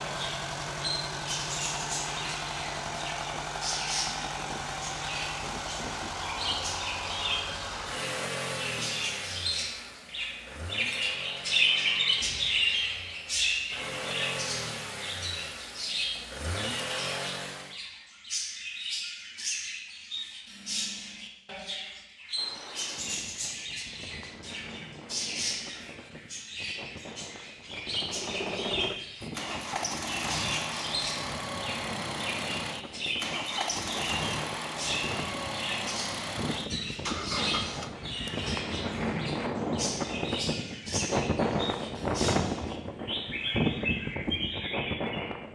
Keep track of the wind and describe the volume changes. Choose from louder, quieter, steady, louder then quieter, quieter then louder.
louder.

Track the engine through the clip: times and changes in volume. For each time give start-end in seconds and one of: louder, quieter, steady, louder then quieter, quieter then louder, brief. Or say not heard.
0.0-17.8 quieter then louder
27.9-38.0 steady.